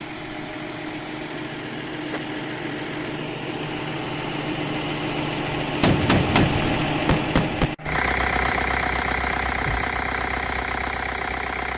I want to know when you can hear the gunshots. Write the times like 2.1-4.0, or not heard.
5.8-7.7.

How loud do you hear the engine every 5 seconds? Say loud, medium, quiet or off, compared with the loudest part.
medium, loud, loud.